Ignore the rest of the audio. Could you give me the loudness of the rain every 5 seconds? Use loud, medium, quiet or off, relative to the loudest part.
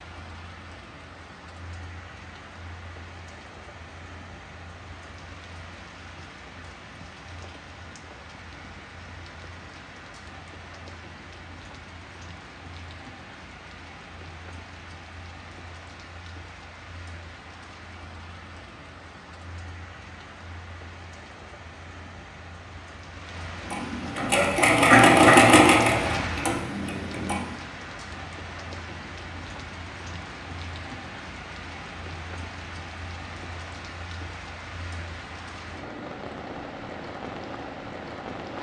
medium, medium, medium, medium, medium, loud, loud, loud.